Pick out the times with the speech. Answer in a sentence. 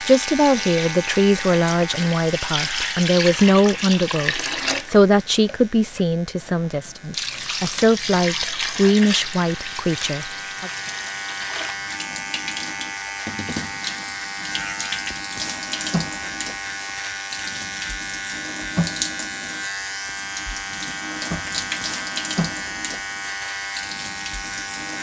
The speech can be heard from 0.1 to 10.7 s.